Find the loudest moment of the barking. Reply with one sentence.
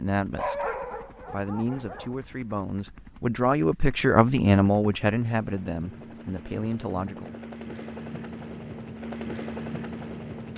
The volume of the barking peaks at 1 second.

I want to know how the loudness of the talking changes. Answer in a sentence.
The loudness of the talking goes up, then down.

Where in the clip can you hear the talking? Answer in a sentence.
You can hear the talking from 0.0 to 7.3 s.